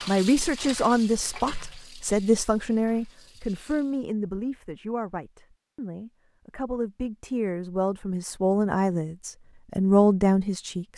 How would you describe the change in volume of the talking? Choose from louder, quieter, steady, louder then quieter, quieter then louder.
quieter then louder.